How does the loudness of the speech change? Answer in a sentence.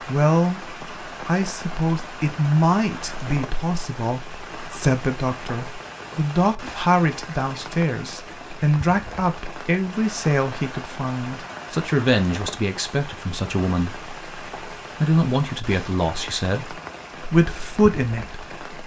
The loudness of the speech stays about the same.